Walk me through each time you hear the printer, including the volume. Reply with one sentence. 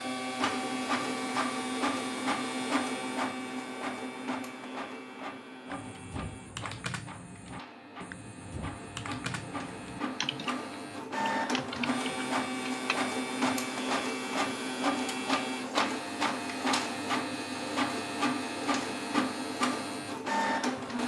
The printer can be heard from 0.0 to 21.0 s, getting quieter then louder.